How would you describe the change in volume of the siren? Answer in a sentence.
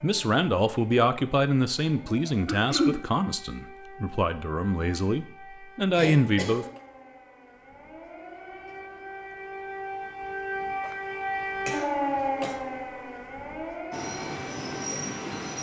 The loudness of the siren goes up.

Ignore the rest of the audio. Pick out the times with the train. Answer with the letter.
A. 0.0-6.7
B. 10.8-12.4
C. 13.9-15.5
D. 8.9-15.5
C.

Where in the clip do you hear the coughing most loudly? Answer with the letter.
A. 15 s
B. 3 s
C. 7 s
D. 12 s
B.